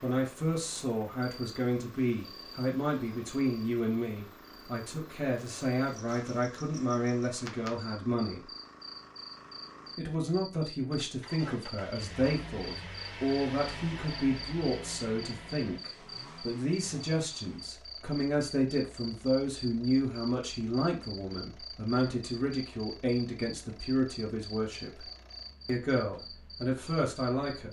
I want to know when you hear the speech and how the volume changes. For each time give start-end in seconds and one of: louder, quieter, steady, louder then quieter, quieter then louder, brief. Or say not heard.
0.0-8.4 steady
9.9-27.6 steady.